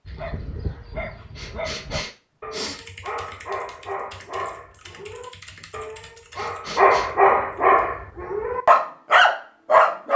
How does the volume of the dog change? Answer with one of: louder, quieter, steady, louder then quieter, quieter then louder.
louder.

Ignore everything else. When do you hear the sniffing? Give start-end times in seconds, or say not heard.
1.4-2.8, 6.3-7.1.